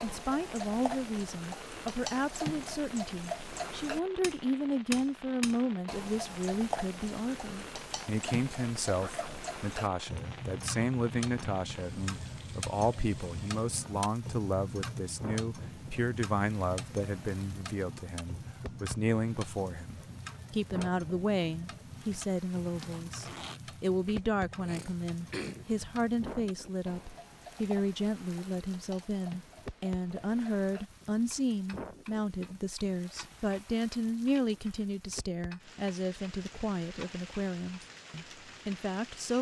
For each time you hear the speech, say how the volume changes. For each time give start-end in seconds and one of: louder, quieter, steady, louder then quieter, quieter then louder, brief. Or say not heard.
0.0-39.3 steady.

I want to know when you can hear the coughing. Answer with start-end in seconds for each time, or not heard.
24.1-25.6.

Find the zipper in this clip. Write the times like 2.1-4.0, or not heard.
8.9-9.4, 22.8-23.6.